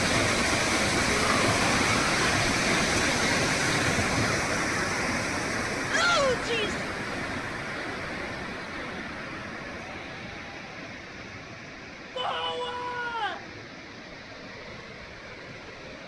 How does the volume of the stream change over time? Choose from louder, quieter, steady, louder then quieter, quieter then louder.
quieter.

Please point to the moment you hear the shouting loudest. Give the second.
6 s.